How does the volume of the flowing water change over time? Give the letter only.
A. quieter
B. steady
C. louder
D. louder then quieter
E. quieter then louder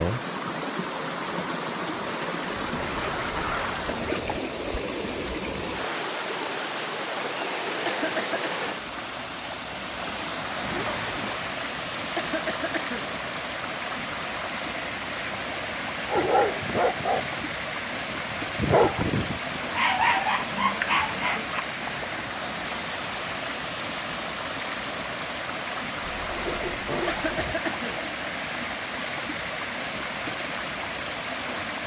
B.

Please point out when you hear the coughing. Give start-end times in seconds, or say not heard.
7.8-8.6, 12.2-13.1, 27.1-28.0.